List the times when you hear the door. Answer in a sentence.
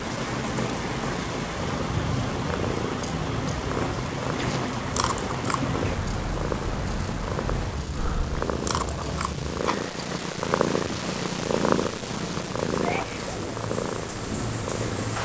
You can't hear the door here.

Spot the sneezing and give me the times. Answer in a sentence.
You can hear the sneezing from 4.3 to 4.8 s and from 12.8 to 13.3 s.